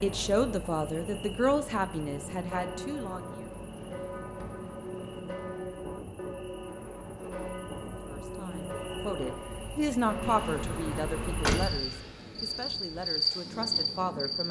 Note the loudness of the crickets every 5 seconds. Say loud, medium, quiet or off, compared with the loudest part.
quiet, quiet, loud.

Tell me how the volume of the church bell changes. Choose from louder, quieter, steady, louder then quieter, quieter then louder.
steady.